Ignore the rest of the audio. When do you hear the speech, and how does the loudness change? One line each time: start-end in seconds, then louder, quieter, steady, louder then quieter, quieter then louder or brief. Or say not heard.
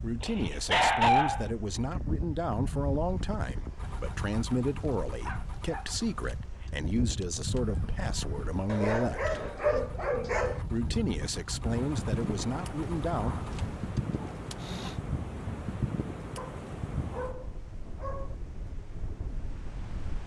0.0-9.3 steady
10.7-13.3 brief.